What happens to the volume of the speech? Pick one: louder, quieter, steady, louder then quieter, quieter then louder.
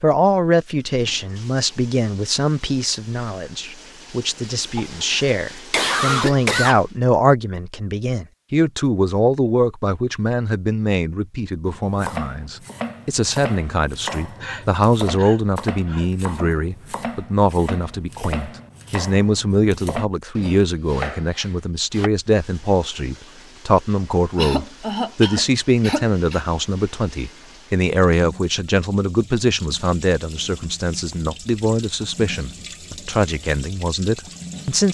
steady.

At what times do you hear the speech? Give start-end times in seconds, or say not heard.
0.0-34.9.